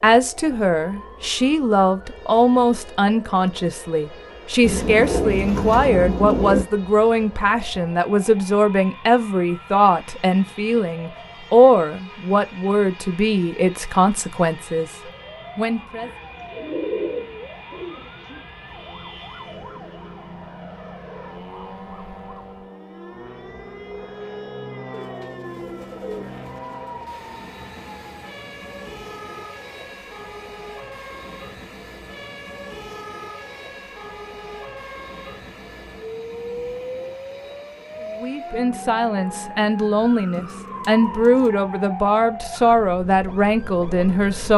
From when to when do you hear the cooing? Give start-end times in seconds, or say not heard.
4.6-6.7, 16.0-18.4, 24.9-27.2, 40.1-41.5.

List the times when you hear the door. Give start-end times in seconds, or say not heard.
not heard.